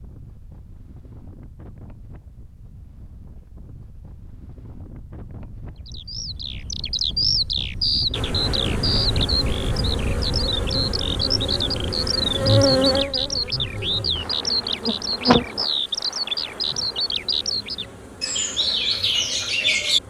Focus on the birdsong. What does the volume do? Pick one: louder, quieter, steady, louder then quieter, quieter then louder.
steady.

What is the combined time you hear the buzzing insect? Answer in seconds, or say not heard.
12 s.